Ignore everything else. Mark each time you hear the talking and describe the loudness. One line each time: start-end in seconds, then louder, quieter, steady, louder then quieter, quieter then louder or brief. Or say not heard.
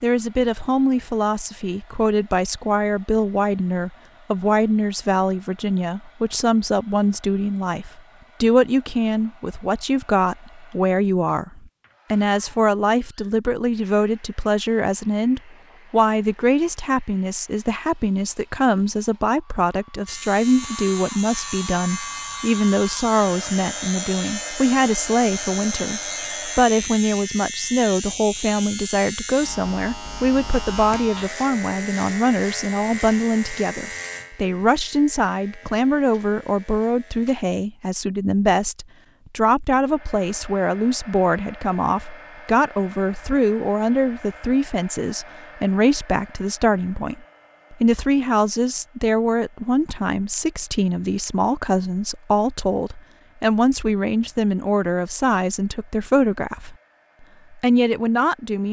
0.0-56.8 steady
57.5-58.6 brief.